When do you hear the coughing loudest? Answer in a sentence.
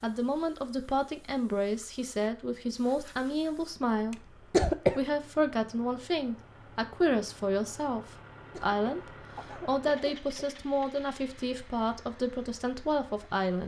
The volume of the coughing peaks at 5 seconds.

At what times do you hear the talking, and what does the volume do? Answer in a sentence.
You can hear the talking from 0.0 to 13.6 s, at a steady volume.